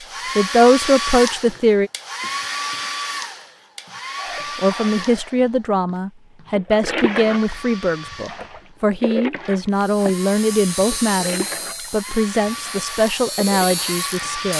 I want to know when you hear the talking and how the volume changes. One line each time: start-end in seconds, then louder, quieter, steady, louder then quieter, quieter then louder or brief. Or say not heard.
0.3-1.9 brief
4.5-14.5 steady.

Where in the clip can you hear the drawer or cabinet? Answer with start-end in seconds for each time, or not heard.
not heard.